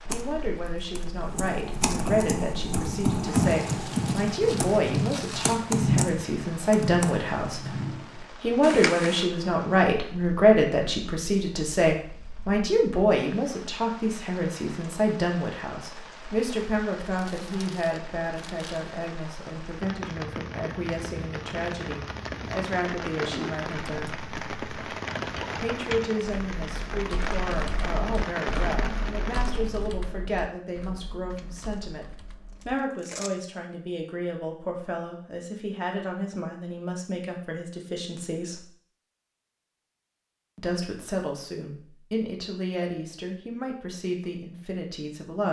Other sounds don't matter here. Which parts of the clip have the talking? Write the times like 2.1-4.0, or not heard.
0.1-7.7, 8.3-24.2, 25.6-38.6, 40.5-45.4.